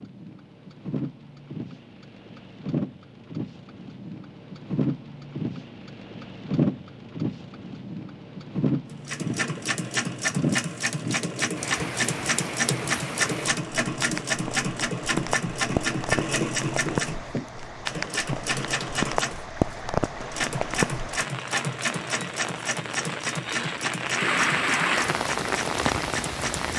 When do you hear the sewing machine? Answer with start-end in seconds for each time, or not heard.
8.9-26.7.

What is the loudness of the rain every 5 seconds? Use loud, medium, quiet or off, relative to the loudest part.
medium, loud, medium, loud, loud, loud.